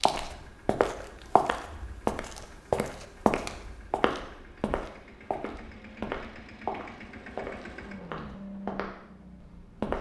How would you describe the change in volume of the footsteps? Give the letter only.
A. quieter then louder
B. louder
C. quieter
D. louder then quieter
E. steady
C.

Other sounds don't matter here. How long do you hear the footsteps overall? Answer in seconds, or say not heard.
10 s.